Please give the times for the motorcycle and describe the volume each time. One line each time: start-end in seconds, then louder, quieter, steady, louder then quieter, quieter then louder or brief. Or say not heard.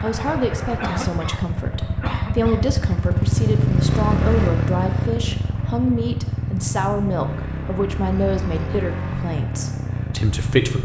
0.0-10.8 louder then quieter.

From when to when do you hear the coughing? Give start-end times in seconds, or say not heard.
0.8-2.7, 8.1-8.8.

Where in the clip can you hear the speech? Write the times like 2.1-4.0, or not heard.
0.0-10.8.